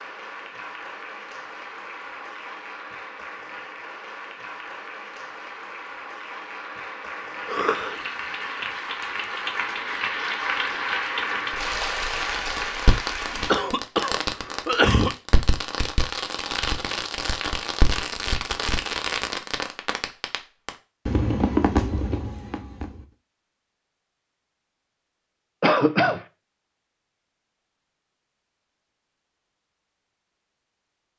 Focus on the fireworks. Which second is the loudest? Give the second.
22 s.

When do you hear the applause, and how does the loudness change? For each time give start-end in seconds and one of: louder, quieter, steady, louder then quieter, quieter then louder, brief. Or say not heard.
0.0-13.5 louder.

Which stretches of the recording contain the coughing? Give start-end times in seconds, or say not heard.
7.5-8.0, 13.4-15.2, 25.6-26.2.